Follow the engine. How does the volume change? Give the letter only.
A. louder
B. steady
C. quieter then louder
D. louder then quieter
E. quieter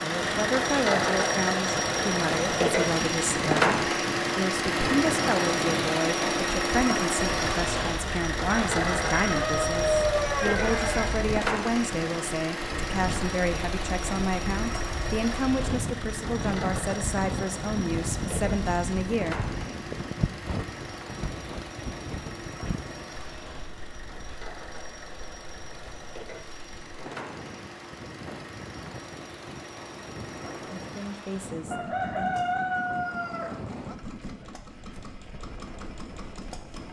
E.